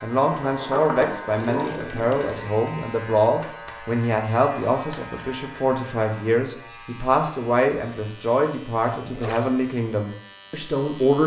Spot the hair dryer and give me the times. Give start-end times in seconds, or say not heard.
not heard.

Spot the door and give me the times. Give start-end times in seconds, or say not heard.
0.5-2.1.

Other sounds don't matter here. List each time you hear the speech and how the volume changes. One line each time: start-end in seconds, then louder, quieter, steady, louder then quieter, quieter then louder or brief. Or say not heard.
0.0-11.2 steady.